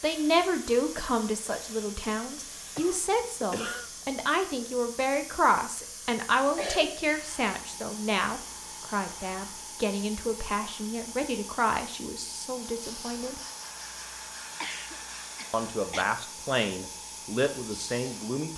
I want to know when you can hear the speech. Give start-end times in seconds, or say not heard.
0.0-13.4, 15.5-18.5.